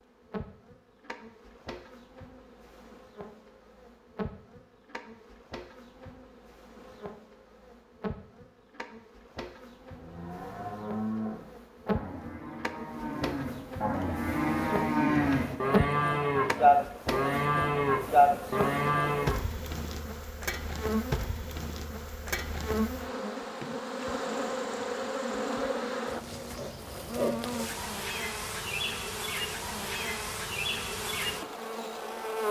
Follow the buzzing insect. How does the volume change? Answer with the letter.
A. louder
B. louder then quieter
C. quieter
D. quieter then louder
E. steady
A.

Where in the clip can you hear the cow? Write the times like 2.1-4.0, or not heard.
9.9-19.4.